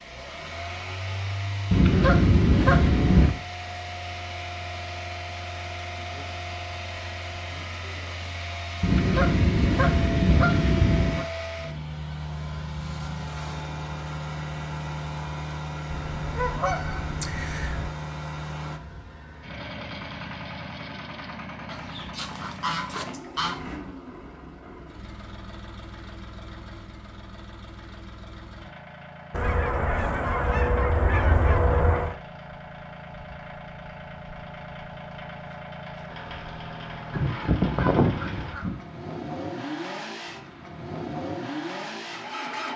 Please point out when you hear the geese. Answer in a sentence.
You can hear the geese from 1.7 to 3.3 s, from 8.8 to 11.2 s, from 15.9 to 17.9 s, from 21.6 to 23.6 s, from 29.3 to 32.1 s and from 37.1 to 38.8 s.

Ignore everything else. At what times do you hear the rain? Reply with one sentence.
You can't hear the rain here.